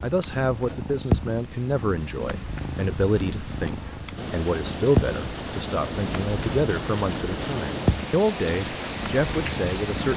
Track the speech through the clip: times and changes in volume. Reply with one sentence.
You can hear the speech from 0.0 to 10.1 s, at a steady volume.